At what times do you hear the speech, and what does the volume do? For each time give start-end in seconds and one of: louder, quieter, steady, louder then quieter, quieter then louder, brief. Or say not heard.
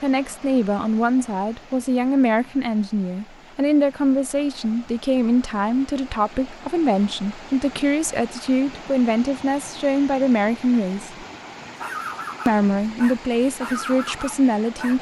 0.0-11.2 steady
12.4-14.9 brief.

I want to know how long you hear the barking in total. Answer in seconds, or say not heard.
3 s.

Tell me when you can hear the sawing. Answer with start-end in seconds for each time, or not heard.
not heard.